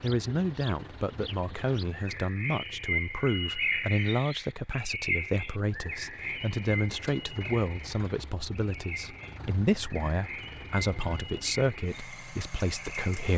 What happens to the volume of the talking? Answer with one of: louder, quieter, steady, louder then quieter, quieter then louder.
steady.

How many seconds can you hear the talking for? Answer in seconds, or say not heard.
13 s.